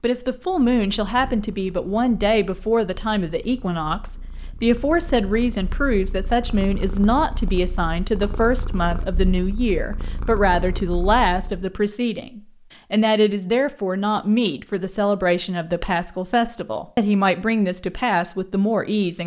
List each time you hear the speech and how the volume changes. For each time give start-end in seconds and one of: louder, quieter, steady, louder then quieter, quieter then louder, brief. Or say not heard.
0.0-19.2 steady.